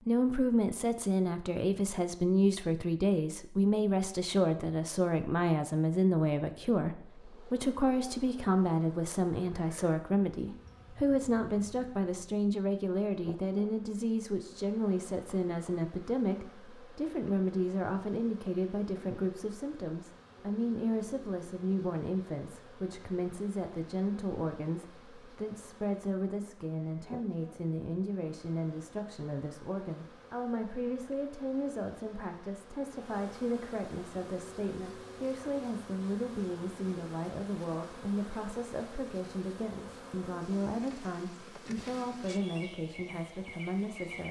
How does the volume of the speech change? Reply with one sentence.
The volume of the speech goes down.